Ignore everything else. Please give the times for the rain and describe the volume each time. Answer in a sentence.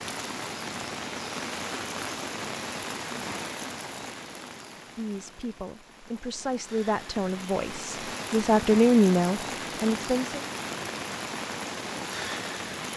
The rain can be heard from 0.0 to 12.9 s, getting quieter then louder.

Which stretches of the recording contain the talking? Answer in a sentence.
You can hear the talking from 4.7 to 10.4 s.